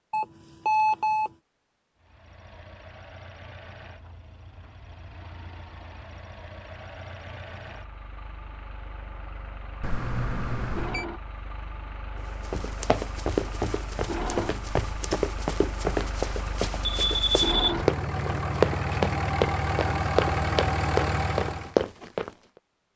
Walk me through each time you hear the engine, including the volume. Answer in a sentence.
The engine can be heard from 1.9 to 21.8 s, getting louder.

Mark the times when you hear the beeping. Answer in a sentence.
You can hear the beeping from 0.1 to 1.3 s, from 9.8 to 11.1 s and from 16.8 to 17.8 s.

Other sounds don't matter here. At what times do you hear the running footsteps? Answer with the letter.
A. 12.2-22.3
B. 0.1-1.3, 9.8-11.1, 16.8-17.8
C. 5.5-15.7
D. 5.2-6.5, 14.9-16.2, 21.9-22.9
A.